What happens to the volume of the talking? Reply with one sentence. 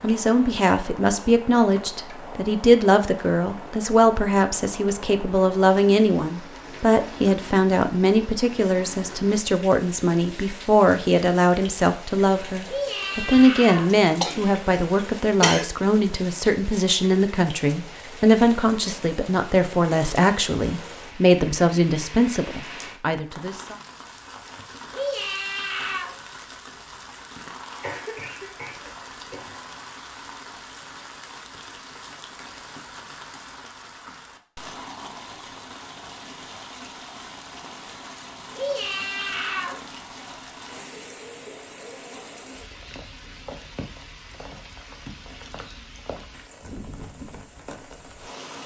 The volume of the talking stays about the same.